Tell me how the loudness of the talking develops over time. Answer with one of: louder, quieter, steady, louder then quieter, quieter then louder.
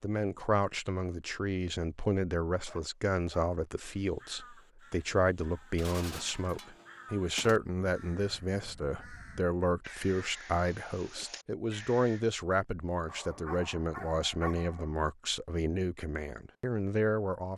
steady.